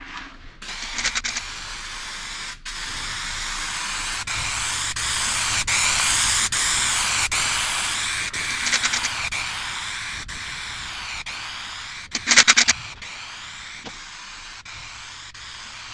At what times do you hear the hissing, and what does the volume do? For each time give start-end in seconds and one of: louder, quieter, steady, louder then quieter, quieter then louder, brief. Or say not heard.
0.0-15.8 louder then quieter.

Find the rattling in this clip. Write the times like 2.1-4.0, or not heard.
0.8-1.4, 8.5-9.1, 12.2-12.8.